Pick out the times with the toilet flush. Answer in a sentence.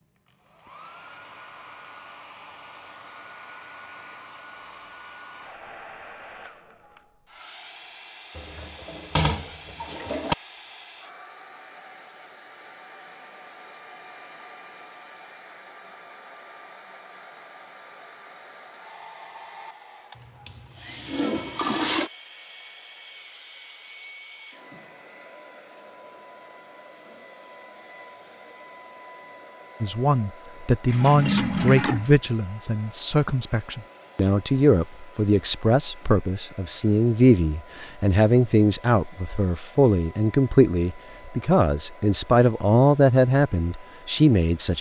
You can hear the toilet flush from 8.3 to 10.3 s, from 20.1 to 22.1 s and from 30.9 to 32.1 s.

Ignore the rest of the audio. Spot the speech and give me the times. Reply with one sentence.
You can hear the speech from 29.8 to 44.7 s.